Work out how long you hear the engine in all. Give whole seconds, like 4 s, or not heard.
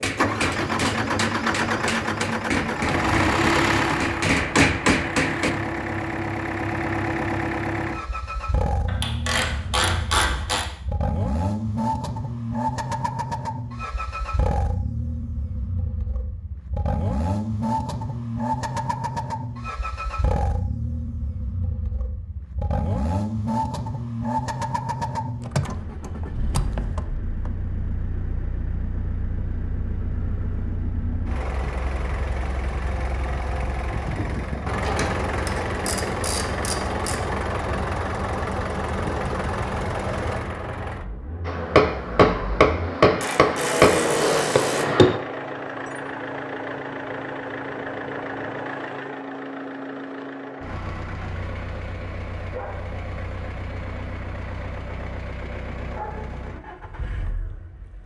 58 s.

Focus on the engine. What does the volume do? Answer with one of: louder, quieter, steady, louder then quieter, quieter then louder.
quieter.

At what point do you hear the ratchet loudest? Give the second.
10 s.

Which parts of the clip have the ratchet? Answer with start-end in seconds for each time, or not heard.
8.8-10.7, 34.8-37.2, 43.2-44.9.